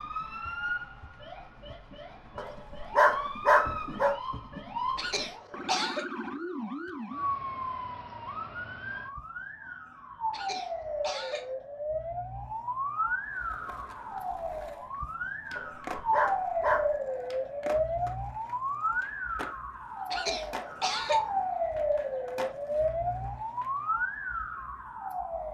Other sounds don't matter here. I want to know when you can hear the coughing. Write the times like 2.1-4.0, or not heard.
5.0-6.0, 10.3-11.6, 20.1-21.3.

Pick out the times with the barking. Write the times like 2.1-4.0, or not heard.
2.4-4.2, 15.6-16.9.